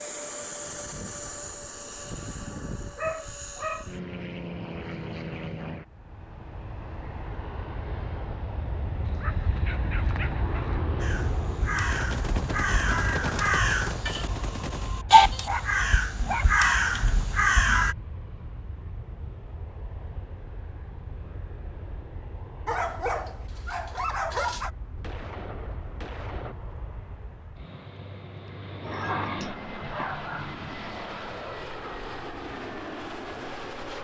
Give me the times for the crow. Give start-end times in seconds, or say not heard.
11.0-17.9.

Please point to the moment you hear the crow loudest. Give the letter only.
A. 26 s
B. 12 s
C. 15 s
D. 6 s
C.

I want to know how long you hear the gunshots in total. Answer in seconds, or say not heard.
5 s.